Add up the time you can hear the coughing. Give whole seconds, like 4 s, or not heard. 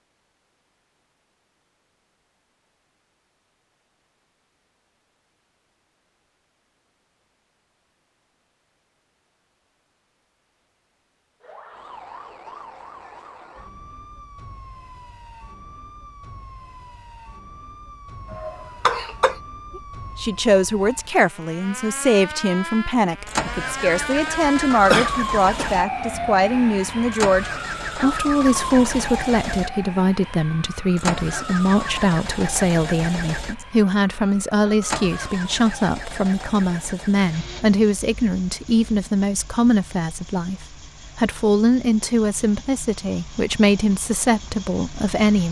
2 s.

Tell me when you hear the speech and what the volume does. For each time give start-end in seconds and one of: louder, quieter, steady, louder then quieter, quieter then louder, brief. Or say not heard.
19.8-45.4 steady.